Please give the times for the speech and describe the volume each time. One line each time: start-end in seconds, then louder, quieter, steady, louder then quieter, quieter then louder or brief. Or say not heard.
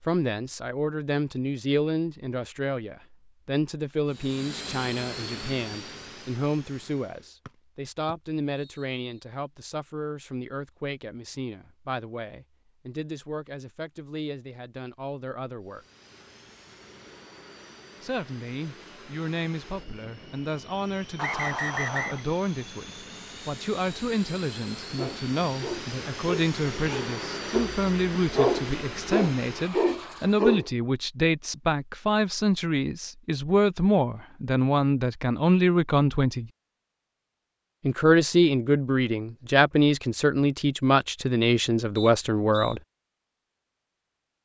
0.0-15.8 quieter
18.0-36.5 louder
37.8-42.8 steady.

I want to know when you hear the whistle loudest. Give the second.
22 s.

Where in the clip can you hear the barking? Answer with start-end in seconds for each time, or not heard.
24.9-30.7.